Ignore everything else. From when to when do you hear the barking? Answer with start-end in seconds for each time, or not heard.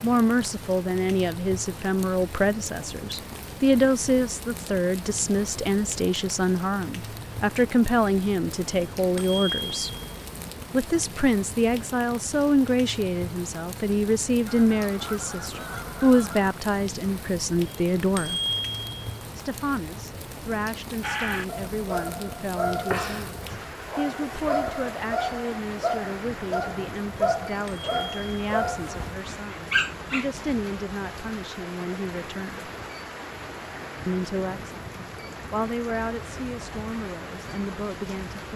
21.0-30.3.